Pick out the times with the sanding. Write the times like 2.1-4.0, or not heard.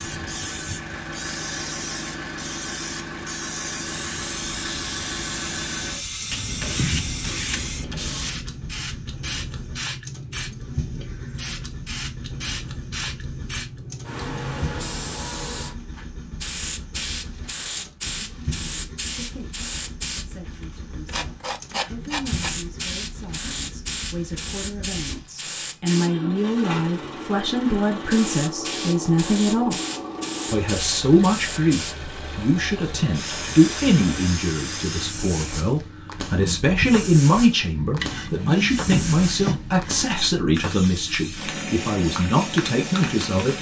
6.3-8.3, 21.1-22.6, 38.0-40.2.